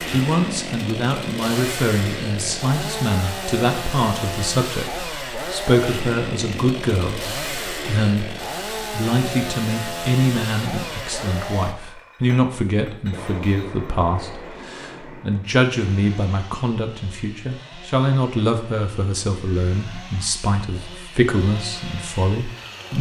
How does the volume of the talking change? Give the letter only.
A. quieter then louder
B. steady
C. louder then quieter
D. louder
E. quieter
B.